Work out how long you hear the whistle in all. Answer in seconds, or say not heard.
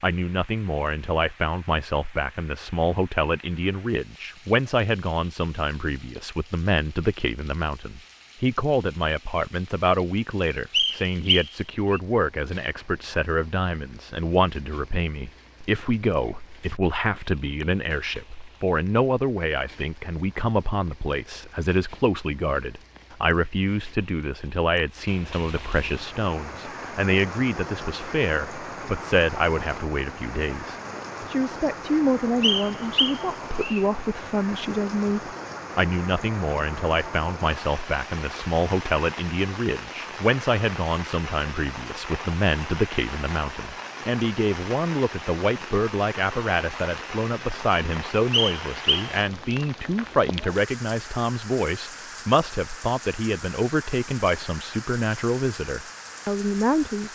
4 s.